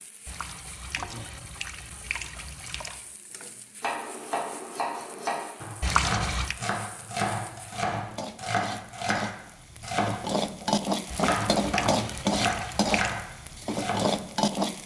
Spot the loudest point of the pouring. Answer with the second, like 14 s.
6 s.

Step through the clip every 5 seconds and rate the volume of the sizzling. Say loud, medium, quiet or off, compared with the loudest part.
quiet, quiet, loud.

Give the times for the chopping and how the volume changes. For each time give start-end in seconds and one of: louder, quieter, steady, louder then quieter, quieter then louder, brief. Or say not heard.
3.8-14.1 steady.